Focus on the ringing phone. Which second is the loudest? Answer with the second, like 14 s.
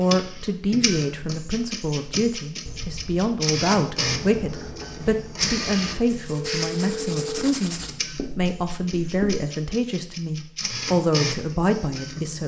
7 s.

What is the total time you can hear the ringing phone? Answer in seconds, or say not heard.
2 s.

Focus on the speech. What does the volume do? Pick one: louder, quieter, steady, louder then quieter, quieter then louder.
steady.